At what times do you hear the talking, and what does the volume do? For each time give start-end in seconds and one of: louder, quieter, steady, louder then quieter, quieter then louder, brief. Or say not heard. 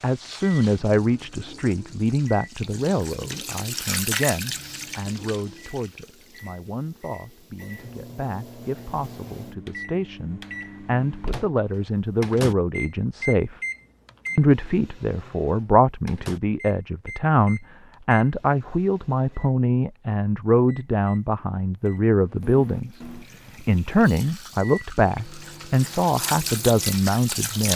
0.0-13.6 quieter then louder
14.3-27.7 steady.